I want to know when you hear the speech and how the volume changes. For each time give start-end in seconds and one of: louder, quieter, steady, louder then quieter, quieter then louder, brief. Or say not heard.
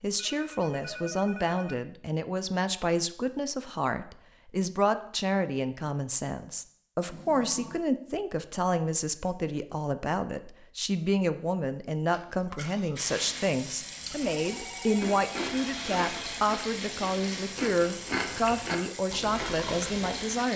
0.0-20.5 steady.